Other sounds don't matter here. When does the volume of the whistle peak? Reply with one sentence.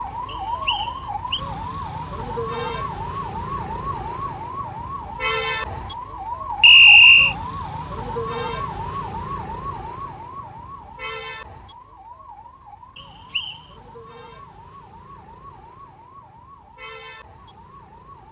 The volume of the whistle peaks at 7 seconds.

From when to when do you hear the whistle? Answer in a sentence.
You can hear the whistle from 0.2 to 1.4 s, from 6.6 to 7.3 s and from 12.9 to 13.6 s.